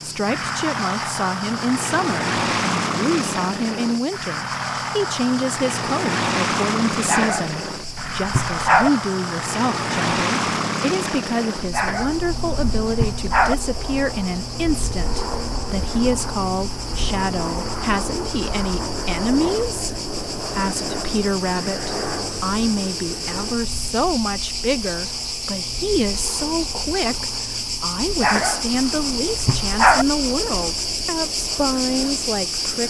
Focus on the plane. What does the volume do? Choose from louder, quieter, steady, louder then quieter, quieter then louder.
quieter.